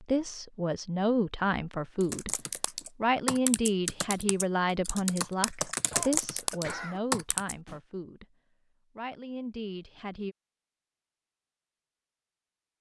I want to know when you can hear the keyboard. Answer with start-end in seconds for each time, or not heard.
2.0-7.8.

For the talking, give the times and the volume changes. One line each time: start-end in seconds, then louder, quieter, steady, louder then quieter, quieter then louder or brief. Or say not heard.
0.0-2.4 brief
3.0-8.3 quieter
8.9-10.3 brief.